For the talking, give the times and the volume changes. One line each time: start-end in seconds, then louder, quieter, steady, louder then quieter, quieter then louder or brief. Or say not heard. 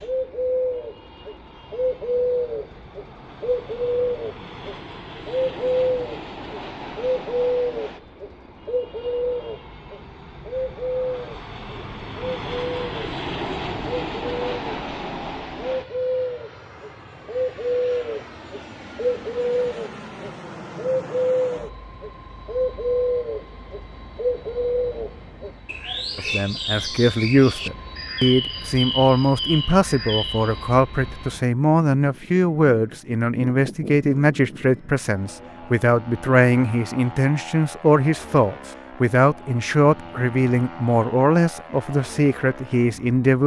26.1-43.4 steady.